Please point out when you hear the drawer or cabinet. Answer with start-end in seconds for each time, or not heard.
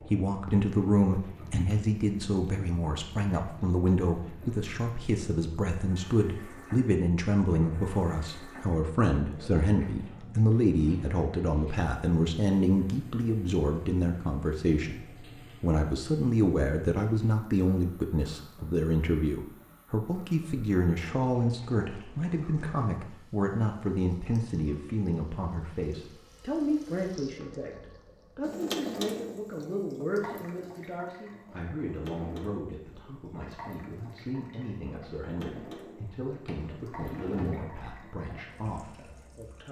36.5-37.9.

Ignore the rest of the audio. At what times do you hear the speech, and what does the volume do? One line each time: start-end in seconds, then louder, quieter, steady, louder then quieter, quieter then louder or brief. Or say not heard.
0.0-39.6 quieter.